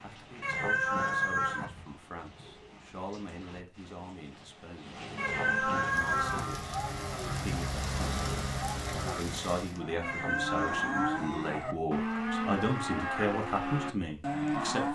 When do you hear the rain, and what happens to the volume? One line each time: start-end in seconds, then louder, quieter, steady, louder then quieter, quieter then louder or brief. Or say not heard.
0.0-9.8 louder.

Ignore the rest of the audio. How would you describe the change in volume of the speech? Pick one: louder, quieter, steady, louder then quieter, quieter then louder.
louder.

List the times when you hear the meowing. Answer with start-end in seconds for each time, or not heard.
0.4-1.6, 5.2-6.5, 10.0-11.2.